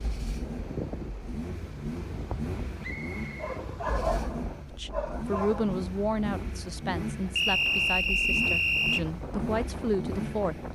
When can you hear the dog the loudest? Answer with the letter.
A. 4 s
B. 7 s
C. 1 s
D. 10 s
A.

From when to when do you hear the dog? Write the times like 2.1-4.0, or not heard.
3.4-5.8.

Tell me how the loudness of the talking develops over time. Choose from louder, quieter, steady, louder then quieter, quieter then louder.
quieter then louder.